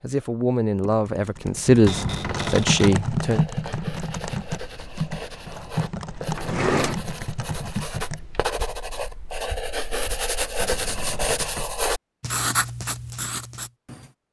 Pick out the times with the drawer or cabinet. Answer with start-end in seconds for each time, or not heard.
1.9-3.0, 6.3-7.0, 10.6-11.8.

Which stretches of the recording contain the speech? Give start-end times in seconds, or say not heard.
0.0-3.5.